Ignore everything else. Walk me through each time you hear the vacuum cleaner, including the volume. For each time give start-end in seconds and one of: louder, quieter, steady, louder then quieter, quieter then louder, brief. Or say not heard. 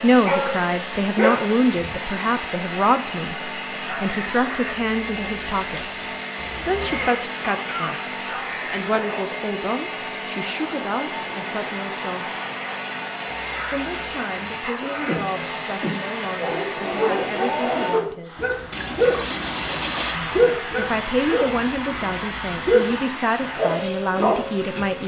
0.0-25.0 steady.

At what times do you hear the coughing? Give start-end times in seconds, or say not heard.
6.3-8.0, 14.8-16.1.